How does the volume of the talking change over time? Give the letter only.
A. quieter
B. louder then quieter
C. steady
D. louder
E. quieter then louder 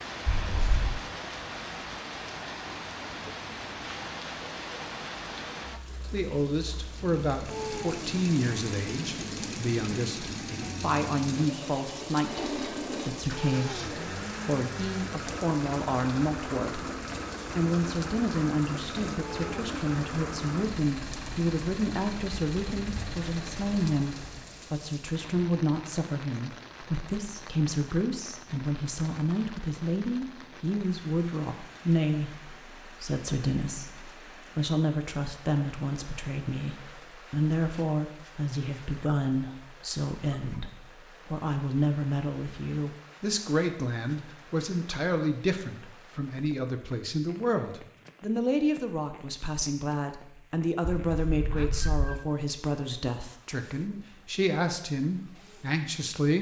C.